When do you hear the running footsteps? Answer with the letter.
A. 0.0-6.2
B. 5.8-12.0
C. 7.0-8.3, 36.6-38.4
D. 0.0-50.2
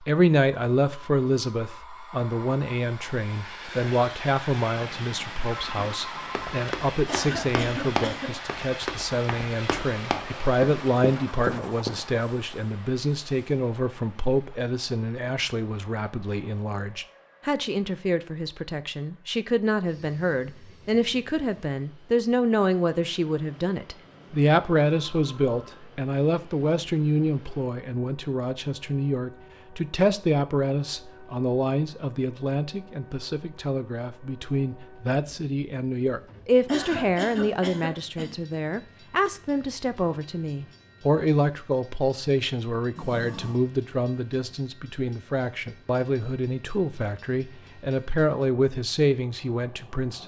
B.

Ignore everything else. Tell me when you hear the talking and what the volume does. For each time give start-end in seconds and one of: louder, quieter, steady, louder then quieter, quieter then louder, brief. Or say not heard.
0.0-50.2 steady.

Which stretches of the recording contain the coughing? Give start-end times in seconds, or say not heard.
7.0-8.3, 36.6-38.4.